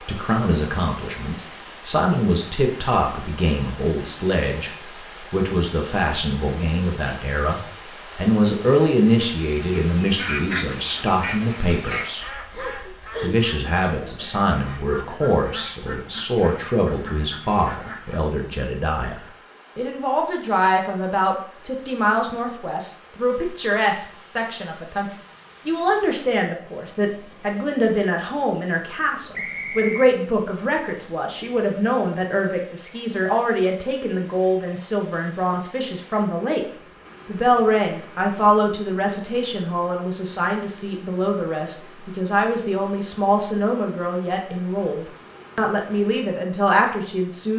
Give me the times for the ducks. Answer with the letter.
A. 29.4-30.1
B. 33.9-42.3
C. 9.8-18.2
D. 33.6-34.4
C.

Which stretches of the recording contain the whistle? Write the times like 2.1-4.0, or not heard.
29.4-30.1.